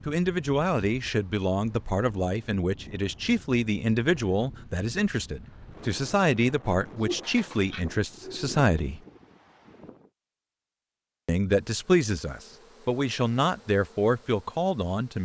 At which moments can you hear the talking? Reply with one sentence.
You can hear the talking from 0.1 to 9.0 s and from 11.2 to 15.2 s.